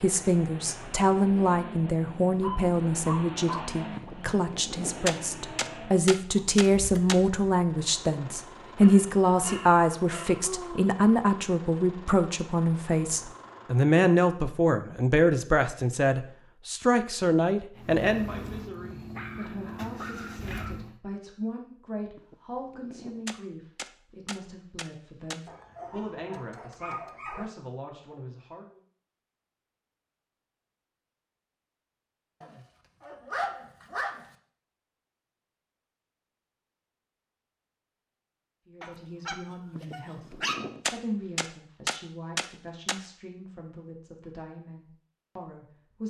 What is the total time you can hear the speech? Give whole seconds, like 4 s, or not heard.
36 s.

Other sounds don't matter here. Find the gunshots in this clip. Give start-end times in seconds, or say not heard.
4.0-7.2, 22.1-25.5, 39.8-43.0.